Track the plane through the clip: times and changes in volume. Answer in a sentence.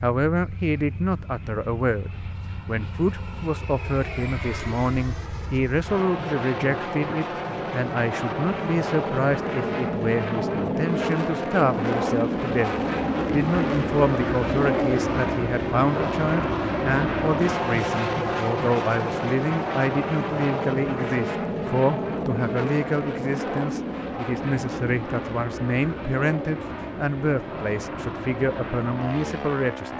You can hear the plane from 0.2 to 29.9 s, getting louder then quieter.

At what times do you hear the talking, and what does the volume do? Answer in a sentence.
The talking can be heard from 0.0 to 29.9 s, at a steady volume.